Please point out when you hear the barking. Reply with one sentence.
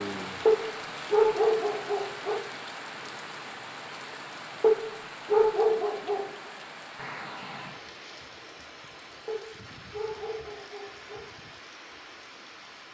You can hear the barking from 0.5 to 2.4 s, from 4.6 to 6.3 s and from 9.2 to 11.2 s.